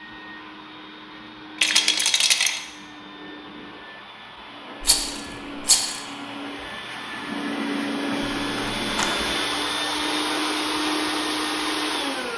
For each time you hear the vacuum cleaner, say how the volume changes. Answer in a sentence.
The vacuum cleaner can be heard from 0.0 to 12.3 s, getting louder.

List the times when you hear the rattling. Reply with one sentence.
You can hear the rattling from 1.6 to 2.6 s, from 4.8 to 6.0 s and from 8.2 to 9.2 s.